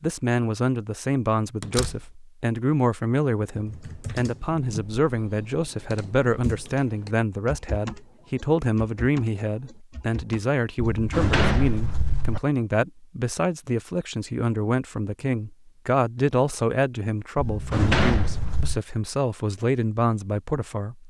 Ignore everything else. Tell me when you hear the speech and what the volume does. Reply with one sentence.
The speech can be heard from 0.0 to 21.0 s, at a steady volume.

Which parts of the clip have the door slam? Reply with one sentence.
The door slam can be heard from 1.6 to 2.0 s, from 10.8 to 12.4 s and from 17.4 to 18.8 s.